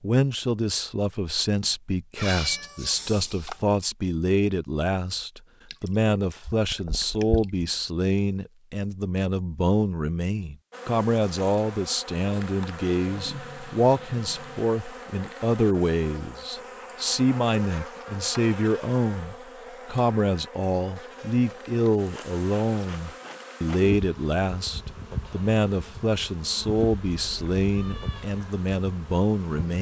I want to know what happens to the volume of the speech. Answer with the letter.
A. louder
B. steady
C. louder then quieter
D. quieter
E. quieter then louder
B.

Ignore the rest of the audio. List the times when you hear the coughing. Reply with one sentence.
You can't hear the coughing here.